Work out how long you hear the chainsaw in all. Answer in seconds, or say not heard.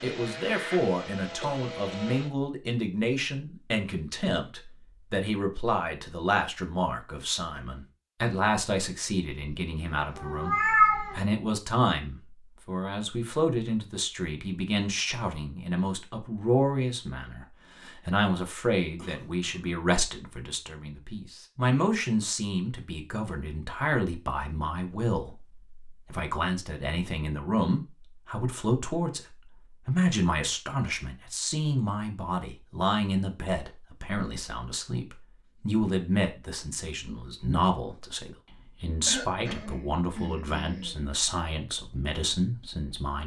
2 s.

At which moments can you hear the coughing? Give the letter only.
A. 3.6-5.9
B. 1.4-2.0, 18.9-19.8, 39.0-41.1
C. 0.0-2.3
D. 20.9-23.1
B.